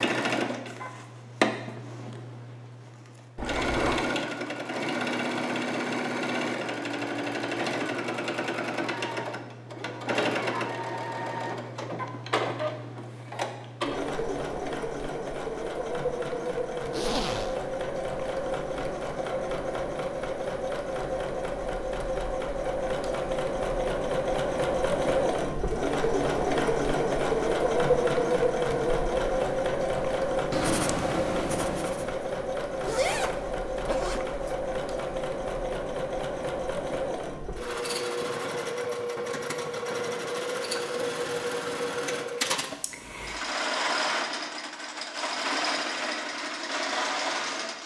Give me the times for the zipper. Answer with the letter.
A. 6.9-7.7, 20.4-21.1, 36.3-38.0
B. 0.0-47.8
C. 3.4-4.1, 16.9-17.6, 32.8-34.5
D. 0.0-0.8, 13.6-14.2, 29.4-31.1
C.